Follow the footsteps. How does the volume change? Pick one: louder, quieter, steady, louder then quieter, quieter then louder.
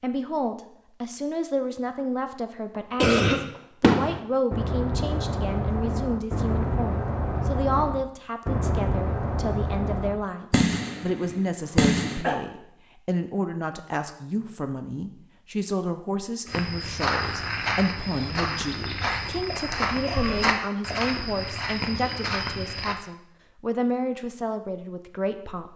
steady.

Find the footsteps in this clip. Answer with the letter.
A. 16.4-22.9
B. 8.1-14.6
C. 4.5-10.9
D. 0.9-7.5
A.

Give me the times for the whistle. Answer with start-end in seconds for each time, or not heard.
not heard.